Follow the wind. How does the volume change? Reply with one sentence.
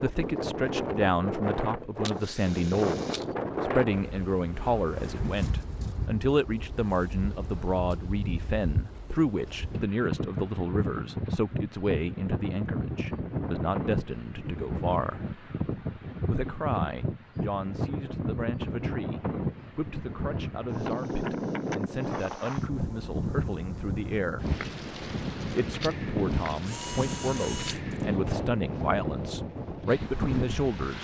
The loudness of the wind stays about the same.